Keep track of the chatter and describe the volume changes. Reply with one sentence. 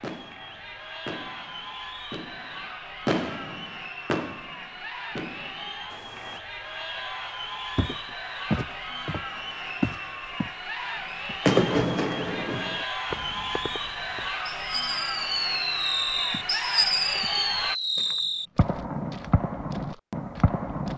The loudness of the chatter goes up.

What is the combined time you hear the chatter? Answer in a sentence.
The chatter can be heard for 18 seconds in total.